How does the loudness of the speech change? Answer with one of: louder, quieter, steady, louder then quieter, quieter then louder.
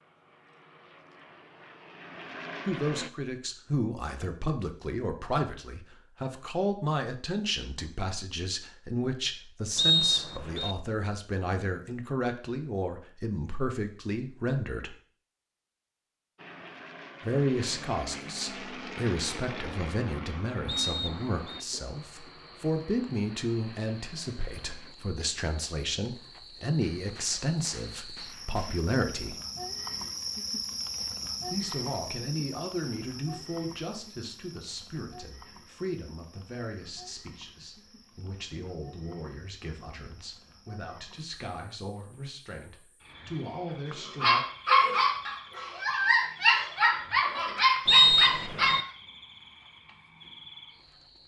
quieter.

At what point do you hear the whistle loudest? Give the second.
48 s.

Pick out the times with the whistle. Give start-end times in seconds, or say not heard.
9.8-10.8, 20.6-21.6, 47.9-48.9.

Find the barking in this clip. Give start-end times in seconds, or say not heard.
44.0-48.9.